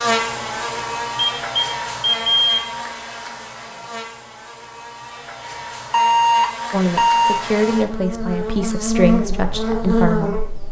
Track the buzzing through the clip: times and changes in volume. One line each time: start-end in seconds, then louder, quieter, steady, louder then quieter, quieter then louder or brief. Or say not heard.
0.0-10.6 quieter then louder.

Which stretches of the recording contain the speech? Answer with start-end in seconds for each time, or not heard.
6.7-10.4.